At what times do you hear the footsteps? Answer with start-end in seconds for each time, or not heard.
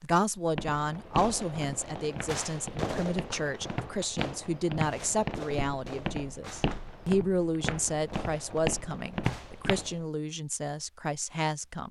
0.3-9.9.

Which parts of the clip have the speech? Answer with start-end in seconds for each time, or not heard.
0.0-11.8.